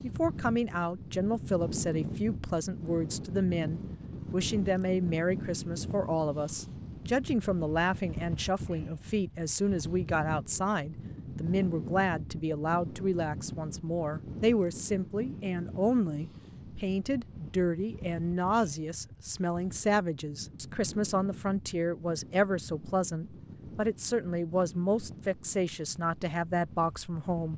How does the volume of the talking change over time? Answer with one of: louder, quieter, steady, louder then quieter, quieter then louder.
steady.